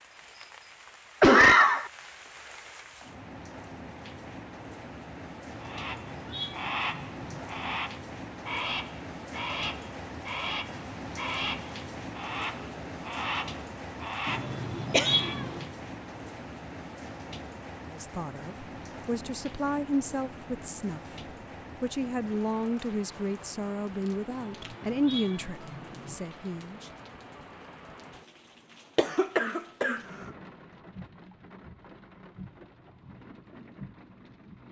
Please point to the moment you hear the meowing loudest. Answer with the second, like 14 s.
15 s.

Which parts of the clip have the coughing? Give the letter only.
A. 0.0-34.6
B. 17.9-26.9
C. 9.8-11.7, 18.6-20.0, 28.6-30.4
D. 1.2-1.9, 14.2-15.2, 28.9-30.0
D.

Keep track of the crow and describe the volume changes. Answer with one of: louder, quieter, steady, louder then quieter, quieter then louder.
steady.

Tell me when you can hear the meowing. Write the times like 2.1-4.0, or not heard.
5.5-7.4, 14.2-15.7, 24.2-26.1.